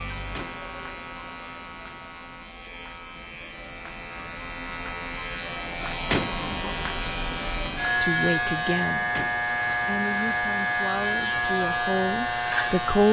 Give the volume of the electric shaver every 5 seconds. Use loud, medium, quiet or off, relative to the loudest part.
medium, loud, loud.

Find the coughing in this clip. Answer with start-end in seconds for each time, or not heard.
not heard.